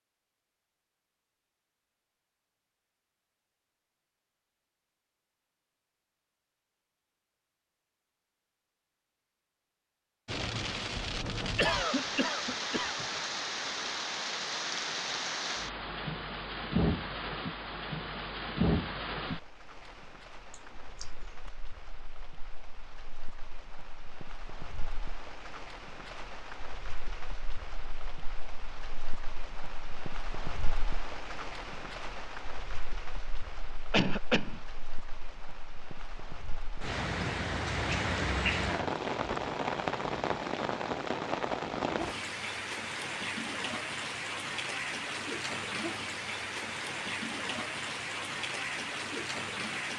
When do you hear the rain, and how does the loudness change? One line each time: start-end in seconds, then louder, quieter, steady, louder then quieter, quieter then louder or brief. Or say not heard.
10.2-49.9 quieter then louder.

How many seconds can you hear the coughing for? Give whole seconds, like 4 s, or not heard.
3 s.